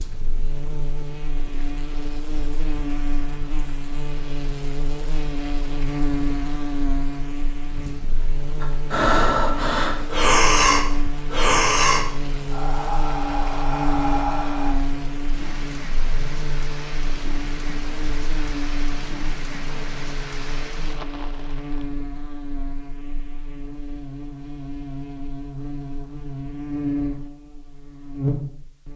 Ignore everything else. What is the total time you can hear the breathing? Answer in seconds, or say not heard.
6 s.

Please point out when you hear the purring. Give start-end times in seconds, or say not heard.
not heard.